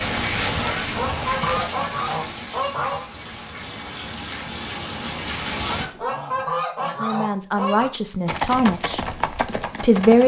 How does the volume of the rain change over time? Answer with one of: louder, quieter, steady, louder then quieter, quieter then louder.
quieter then louder.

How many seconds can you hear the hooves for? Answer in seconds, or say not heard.
4 s.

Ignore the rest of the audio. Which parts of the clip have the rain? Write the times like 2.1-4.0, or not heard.
0.0-5.8.